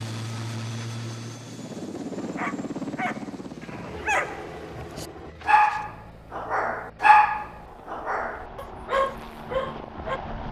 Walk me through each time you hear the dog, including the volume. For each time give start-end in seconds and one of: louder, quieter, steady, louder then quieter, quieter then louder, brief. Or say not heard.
2.2-10.2 louder then quieter.